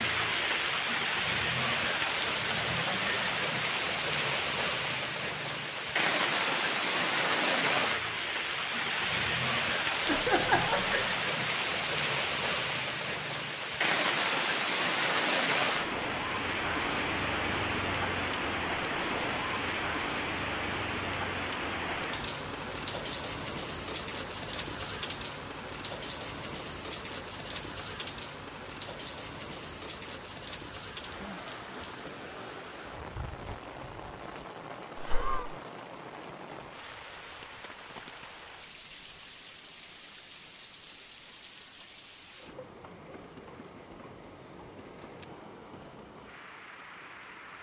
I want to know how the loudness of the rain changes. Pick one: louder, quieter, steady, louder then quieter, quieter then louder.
quieter.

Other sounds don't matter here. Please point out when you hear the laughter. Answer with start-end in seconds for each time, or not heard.
10.1-11.1, 35.0-35.5.